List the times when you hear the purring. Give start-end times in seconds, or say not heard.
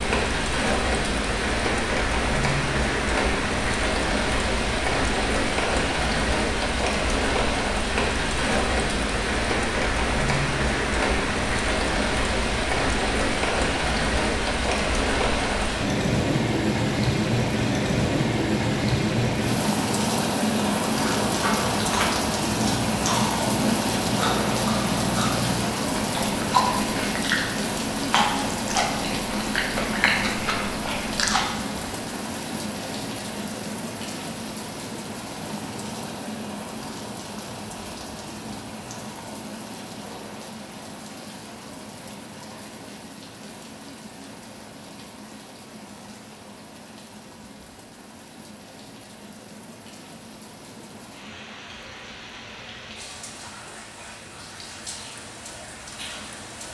not heard.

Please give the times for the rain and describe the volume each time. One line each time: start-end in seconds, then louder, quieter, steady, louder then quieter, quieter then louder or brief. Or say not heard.
0.0-56.6 quieter.